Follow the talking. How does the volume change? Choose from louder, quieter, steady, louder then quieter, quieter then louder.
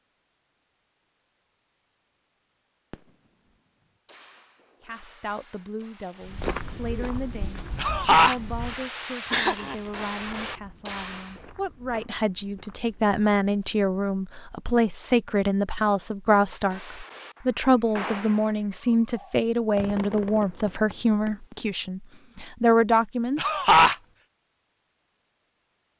louder.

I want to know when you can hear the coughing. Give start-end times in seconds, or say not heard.
7.8-8.3, 9.3-9.8, 23.4-23.9.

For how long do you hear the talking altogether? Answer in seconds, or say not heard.
19 s.